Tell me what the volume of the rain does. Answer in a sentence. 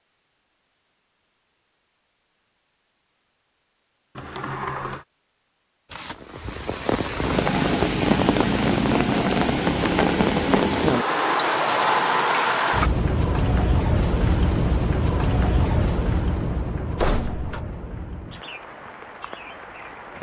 The volume of the rain goes down.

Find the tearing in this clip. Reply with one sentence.
The tearing can be heard from 5.8 to 6.3 s.